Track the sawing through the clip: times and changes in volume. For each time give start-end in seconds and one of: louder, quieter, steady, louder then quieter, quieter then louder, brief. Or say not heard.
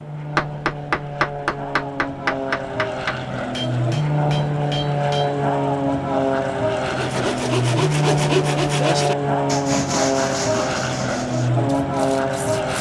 6.8-12.7 quieter.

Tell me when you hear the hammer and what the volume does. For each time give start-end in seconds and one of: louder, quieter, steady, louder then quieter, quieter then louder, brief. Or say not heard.
0.3-5.3 quieter.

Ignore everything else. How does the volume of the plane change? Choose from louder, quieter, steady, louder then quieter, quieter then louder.
louder.